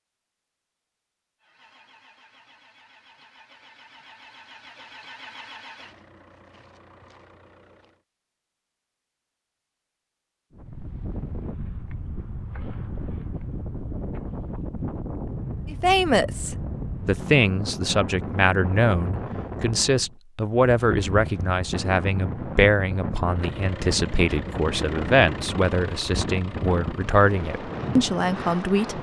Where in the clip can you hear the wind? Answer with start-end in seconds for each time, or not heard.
10.5-28.9.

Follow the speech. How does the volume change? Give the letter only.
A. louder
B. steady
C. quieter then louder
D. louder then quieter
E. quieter
B.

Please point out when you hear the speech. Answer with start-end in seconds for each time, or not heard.
15.7-28.9.